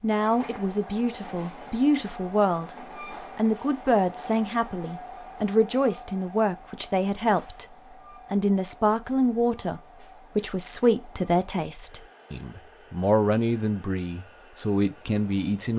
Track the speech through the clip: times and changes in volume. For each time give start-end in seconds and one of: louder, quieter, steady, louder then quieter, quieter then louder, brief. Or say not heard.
0.0-15.7 steady.